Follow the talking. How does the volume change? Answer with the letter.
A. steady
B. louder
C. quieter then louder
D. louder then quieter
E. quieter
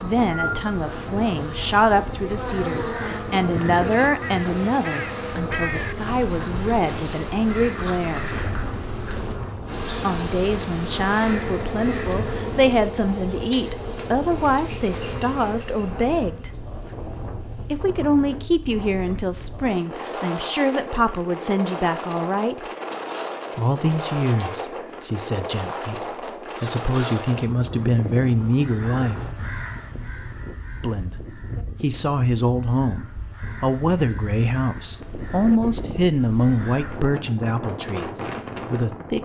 A.